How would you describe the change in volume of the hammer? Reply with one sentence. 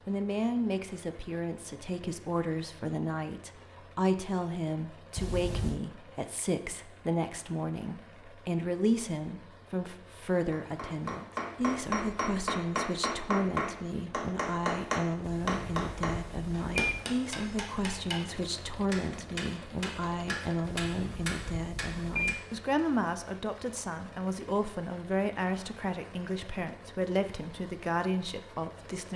The volume of the hammer goes down.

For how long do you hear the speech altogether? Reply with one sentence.
You can hear the speech for 29 seconds altogether.